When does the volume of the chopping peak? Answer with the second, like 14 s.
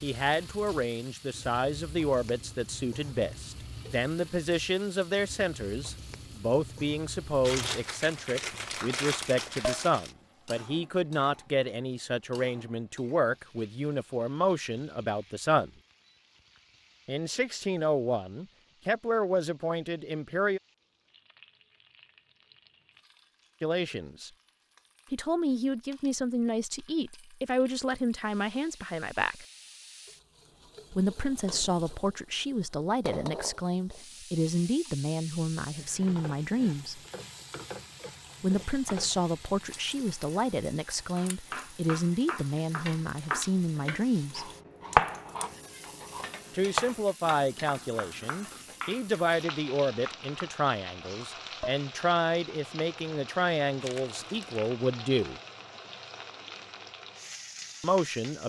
45 s.